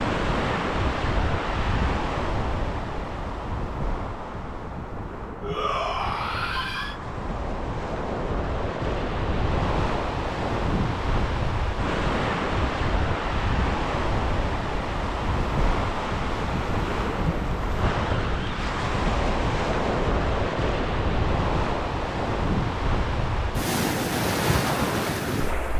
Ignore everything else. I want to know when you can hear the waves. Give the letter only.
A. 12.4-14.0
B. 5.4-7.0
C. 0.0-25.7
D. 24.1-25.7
C.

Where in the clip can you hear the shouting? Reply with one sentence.
You can hear the shouting from 5.4 to 7.0 s.